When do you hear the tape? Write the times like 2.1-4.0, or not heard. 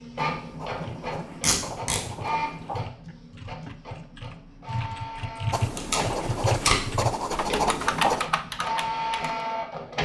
1.4-2.0, 5.6-6.9.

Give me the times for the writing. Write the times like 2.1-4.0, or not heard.
0.2-2.9, 5.5-8.3.